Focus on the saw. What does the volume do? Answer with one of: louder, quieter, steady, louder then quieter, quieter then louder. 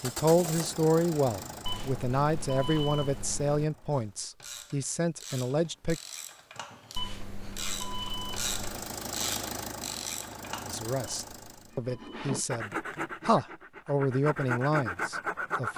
quieter then louder.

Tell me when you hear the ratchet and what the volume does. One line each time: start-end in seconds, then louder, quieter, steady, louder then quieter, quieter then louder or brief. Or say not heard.
3.9-10.8 louder.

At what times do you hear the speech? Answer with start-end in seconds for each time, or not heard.
0.0-6.0, 10.7-15.7.